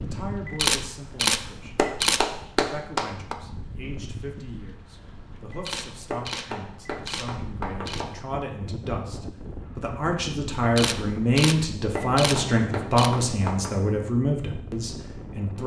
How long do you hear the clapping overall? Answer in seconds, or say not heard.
5 s.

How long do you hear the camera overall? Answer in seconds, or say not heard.
7 s.